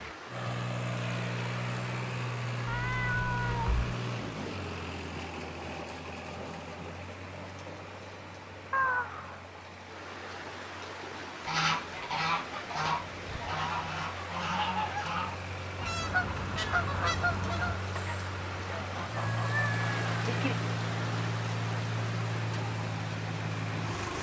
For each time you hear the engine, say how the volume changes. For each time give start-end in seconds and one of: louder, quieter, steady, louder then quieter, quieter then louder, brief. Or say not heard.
0.0-24.1 quieter then louder.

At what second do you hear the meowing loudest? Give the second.
9 s.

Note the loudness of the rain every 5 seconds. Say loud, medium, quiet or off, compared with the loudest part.
medium, medium, loud, loud, loud.